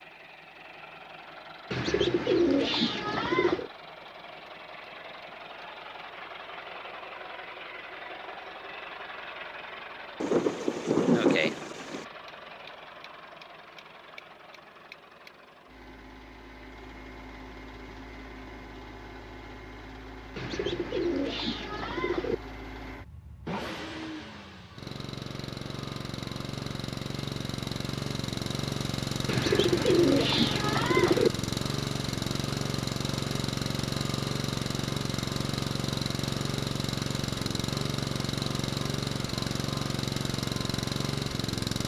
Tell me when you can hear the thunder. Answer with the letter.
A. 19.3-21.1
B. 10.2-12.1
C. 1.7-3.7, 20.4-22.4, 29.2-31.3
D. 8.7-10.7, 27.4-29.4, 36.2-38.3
B.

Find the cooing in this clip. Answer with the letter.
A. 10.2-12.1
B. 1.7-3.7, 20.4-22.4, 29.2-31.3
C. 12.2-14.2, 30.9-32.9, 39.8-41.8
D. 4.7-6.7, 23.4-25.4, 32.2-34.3
B.